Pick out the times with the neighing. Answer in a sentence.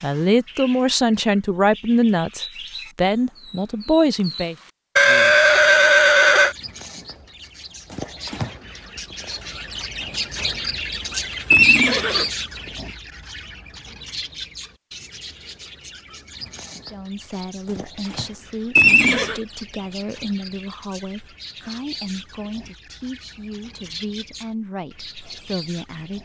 You can hear the neighing from 5.0 to 6.5 s, from 11.5 to 12.2 s and from 18.8 to 19.4 s.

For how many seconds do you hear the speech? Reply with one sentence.
The speech can be heard for 14 seconds in total.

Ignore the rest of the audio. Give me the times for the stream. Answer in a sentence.
The stream can't be heard in this clip.